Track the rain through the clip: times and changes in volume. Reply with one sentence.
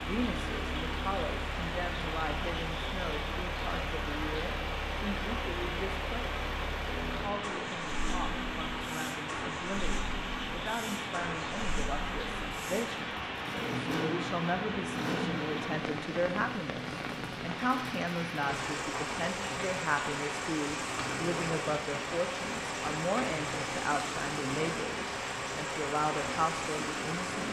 The rain can be heard from 0.0 to 27.4 s, at a steady volume.